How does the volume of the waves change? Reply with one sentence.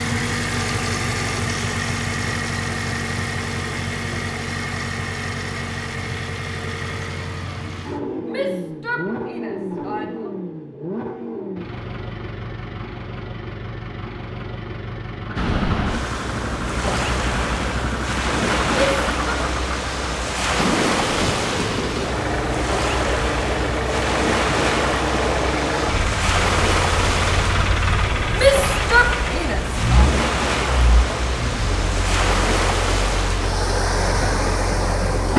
The loudness of the waves stays about the same.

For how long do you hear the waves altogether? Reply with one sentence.
The waves can be heard for 20 seconds in total.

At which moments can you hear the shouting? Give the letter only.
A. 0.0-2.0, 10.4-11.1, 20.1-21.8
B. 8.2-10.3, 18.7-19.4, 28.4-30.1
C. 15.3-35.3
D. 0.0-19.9
B.